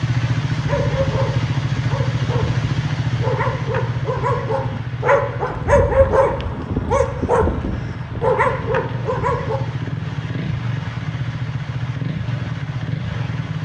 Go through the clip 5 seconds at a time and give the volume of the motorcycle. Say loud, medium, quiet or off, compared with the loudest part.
loud, medium, loud.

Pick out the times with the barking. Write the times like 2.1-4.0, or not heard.
0.6-9.6.